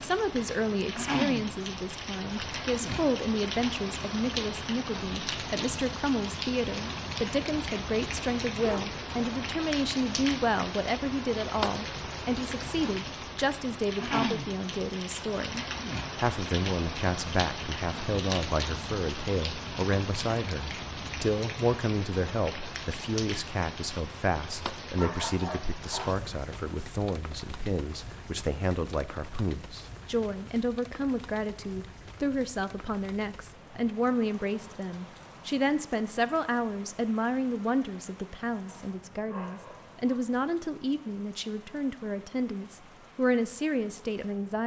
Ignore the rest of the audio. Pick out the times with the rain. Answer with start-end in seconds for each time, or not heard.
0.0-44.6.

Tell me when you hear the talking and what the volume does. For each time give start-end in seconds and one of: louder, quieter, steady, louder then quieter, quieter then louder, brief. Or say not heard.
0.0-44.6 steady.